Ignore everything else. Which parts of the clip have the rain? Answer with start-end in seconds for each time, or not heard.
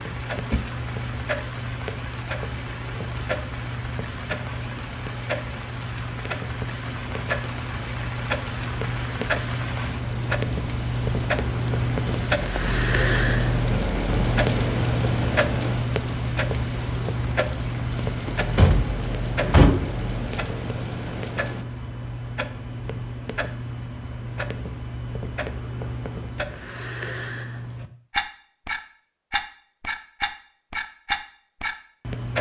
0.0-21.6.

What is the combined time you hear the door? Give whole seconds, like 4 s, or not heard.
2 s.